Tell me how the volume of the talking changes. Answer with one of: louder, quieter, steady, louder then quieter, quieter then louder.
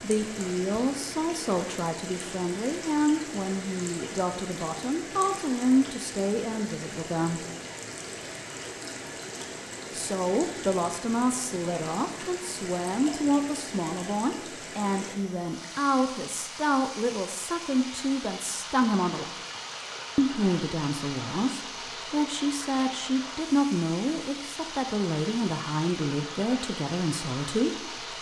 steady.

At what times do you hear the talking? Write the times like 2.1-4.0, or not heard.
0.0-7.5, 9.9-19.3, 20.1-28.1.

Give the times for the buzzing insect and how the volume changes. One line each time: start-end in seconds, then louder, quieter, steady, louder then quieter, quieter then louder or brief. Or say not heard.
not heard.